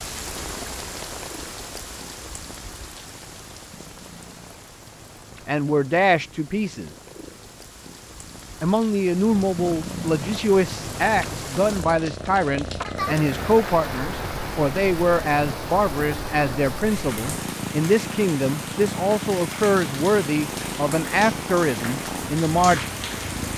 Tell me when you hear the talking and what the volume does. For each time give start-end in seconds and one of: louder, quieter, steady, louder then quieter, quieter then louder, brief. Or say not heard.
5.5-6.9 brief
8.6-22.9 steady.